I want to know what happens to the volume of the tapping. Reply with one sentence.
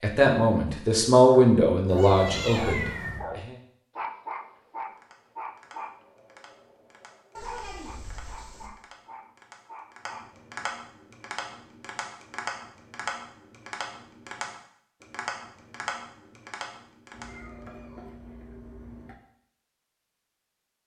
The volume of the tapping goes up.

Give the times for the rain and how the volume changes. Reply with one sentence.
You can't hear the rain here.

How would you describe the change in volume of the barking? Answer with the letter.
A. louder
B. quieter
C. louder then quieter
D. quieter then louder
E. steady
B.